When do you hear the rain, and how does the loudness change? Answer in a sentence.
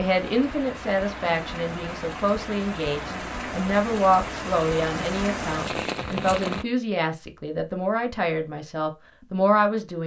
The rain can be heard from 0.0 to 6.7 s, getting louder.